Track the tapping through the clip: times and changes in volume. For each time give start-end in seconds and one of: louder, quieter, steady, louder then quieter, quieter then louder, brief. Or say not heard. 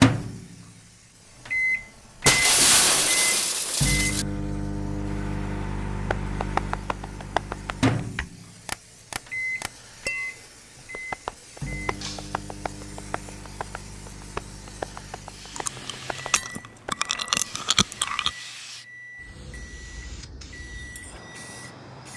6.1-10.3 quieter
10.9-16.9 louder then quieter.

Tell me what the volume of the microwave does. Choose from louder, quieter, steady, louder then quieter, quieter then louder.
quieter.